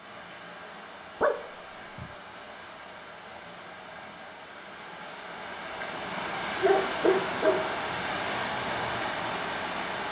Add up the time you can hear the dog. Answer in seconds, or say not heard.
2 s.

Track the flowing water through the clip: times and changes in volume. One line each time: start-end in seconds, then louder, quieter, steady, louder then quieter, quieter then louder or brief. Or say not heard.
0.0-10.0 louder.